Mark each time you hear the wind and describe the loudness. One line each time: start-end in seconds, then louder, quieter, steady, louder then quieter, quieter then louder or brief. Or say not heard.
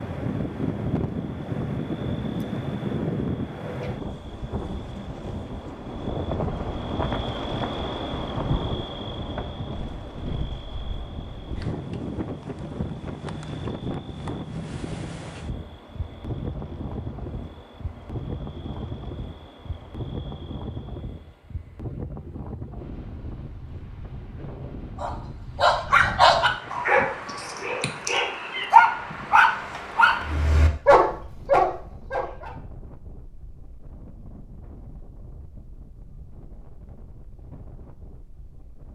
0.0-38.9 quieter.